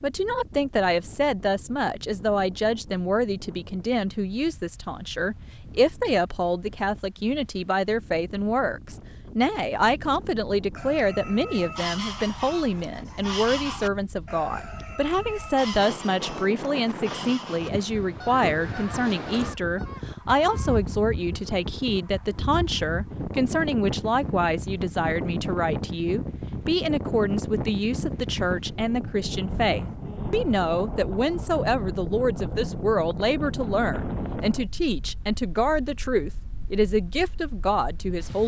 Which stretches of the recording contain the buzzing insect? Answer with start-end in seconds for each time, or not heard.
not heard.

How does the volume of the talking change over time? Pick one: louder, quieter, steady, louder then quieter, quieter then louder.
steady.